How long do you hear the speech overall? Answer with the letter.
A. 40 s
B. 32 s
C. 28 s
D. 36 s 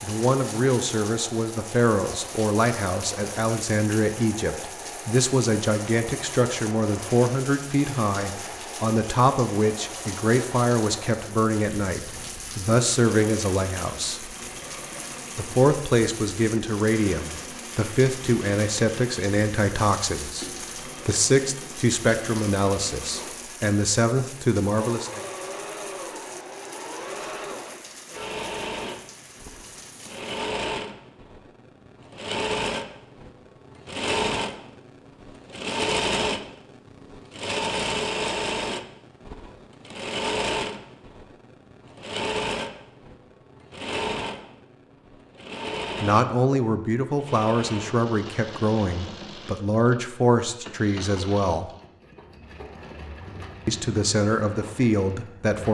B.